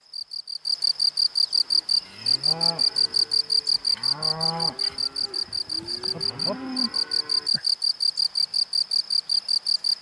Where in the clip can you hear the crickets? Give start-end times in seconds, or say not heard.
0.0-9.9.